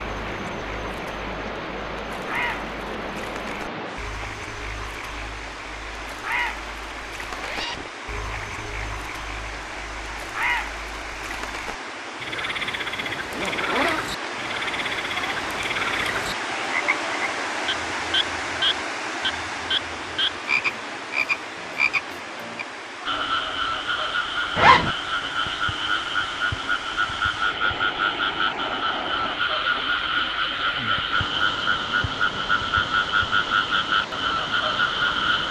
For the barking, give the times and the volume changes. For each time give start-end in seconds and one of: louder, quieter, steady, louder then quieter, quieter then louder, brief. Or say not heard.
not heard.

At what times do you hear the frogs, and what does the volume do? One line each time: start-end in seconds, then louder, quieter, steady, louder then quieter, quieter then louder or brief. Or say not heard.
0.0-35.4 louder.